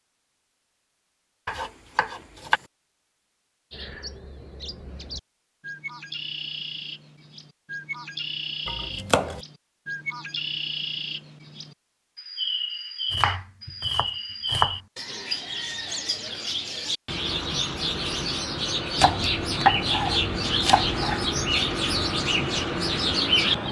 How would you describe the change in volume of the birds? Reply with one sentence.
The volume of the birds goes up.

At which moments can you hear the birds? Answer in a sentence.
The birds can be heard from 3.7 to 23.6 s.